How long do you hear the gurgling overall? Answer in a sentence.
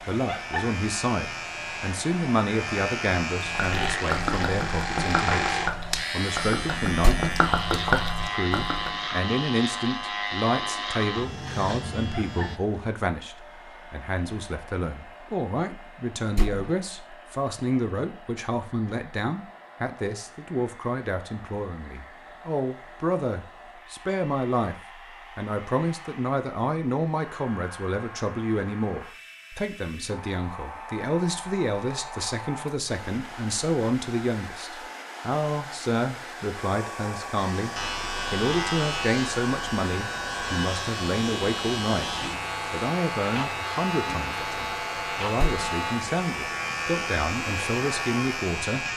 The gurgling can be heard for 6 seconds in total.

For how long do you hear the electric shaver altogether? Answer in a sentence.
The electric shaver can be heard for 24 seconds in total.